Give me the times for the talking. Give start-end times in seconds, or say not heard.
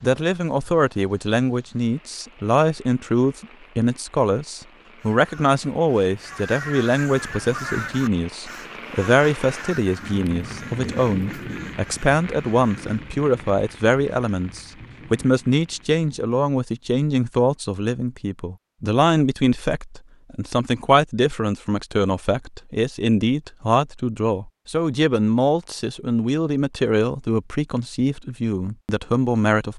0.0-29.7.